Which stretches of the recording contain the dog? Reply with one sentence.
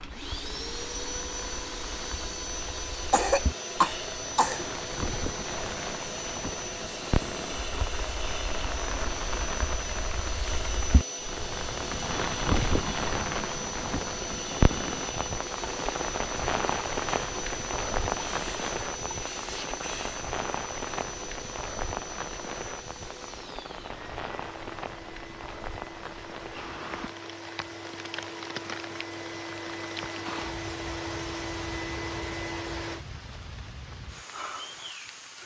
You can't hear the dog here.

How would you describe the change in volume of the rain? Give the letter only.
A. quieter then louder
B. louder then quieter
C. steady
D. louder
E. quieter
B.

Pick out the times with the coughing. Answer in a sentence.
The coughing can be heard from 2.6 to 4.7 s.